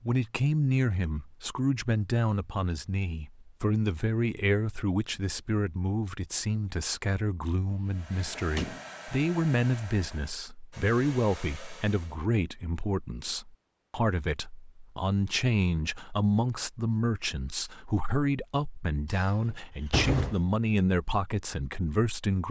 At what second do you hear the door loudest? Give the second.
20 s.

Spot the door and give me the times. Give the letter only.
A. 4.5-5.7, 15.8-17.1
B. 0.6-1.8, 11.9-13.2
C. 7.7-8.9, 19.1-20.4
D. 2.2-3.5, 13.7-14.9
C.